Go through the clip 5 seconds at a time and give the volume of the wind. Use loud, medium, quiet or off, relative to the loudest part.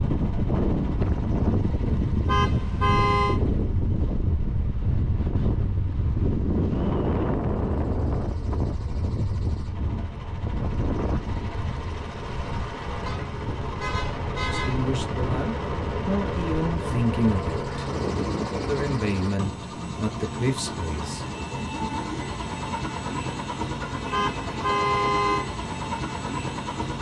loud, loud, medium, medium, off, off.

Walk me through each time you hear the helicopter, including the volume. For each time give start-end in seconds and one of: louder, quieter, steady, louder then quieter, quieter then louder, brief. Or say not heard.
0.0-26.9 louder.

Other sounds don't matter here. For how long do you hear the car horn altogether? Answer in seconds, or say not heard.
4 s.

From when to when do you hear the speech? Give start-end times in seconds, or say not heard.
14.4-17.8, 18.6-21.2.